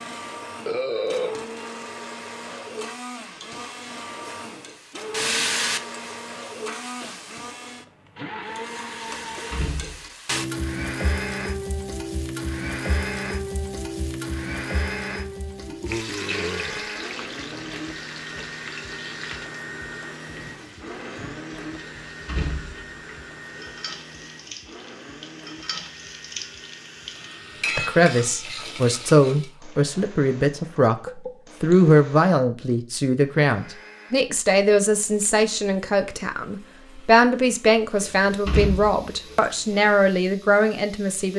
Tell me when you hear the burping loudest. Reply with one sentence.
The volume of the burping peaks at 1 second.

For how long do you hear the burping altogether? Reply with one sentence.
The burping can be heard for 3 seconds in total.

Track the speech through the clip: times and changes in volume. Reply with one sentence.
You can hear the speech from 27.8 to 41.3 s, at a steady volume.